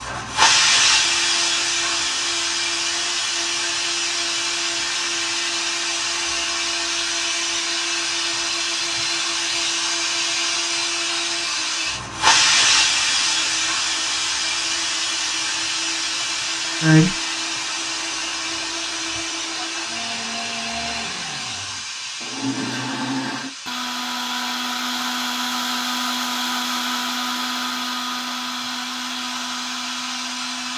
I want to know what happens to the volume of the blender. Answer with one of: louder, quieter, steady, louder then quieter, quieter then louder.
louder.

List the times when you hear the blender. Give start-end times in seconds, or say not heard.
0.0-30.7.